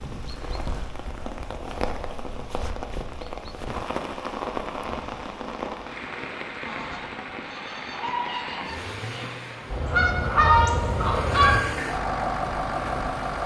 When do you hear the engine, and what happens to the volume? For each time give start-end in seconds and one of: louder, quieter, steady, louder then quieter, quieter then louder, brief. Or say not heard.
8.6-13.4 quieter then louder.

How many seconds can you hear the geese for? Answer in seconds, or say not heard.
5 s.